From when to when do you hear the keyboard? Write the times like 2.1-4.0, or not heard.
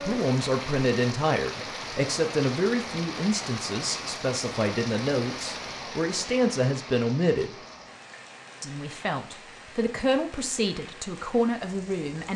not heard.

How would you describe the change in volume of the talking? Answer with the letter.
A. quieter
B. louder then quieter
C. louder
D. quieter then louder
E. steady
E.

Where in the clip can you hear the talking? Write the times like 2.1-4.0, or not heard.
0.0-7.5, 8.6-12.3.